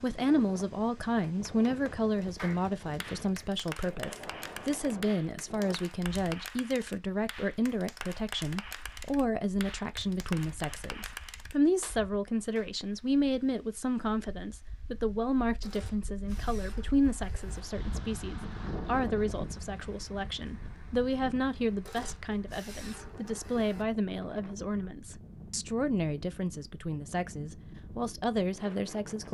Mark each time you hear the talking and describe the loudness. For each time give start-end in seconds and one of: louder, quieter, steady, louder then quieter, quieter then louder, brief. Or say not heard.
0.0-29.2 steady.